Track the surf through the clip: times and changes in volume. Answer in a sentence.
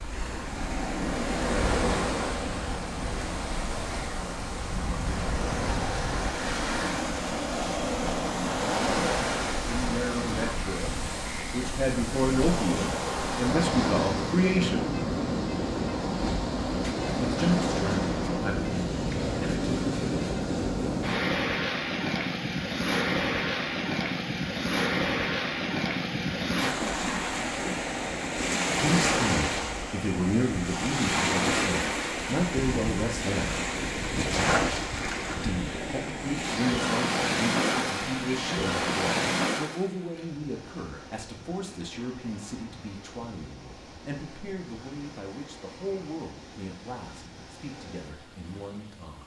You can hear the surf from 0.0 to 49.2 s, getting quieter.